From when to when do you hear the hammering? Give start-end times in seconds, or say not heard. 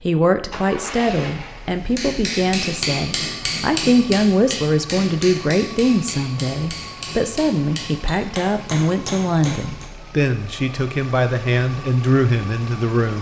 1.9-9.9.